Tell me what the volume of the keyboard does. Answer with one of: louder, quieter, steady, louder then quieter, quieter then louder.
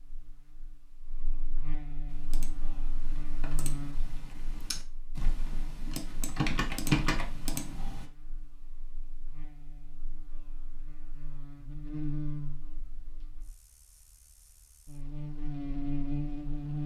louder.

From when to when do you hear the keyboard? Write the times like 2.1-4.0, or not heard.
2.0-8.1.